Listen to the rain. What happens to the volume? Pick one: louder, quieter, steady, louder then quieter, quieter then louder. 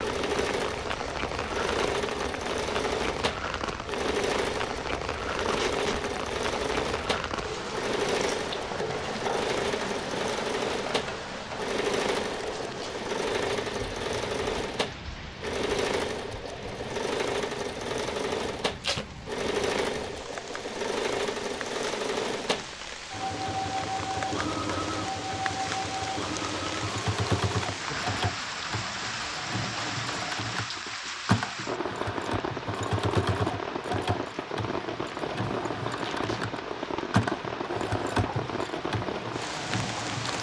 quieter then louder.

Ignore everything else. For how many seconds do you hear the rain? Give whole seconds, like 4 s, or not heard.
40 s.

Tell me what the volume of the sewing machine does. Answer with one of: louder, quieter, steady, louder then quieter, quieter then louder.
steady.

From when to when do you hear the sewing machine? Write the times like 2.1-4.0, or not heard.
0.0-40.3.